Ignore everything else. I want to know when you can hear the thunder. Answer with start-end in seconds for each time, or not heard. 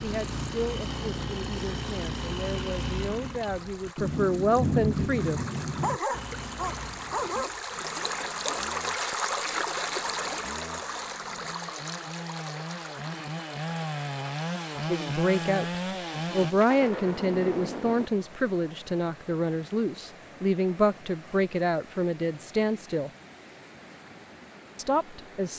4.0-6.0, 16.4-18.1.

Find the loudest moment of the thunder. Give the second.
5 s.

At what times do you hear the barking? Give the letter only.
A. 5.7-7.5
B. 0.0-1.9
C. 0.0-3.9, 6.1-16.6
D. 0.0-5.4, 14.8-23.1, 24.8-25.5
A.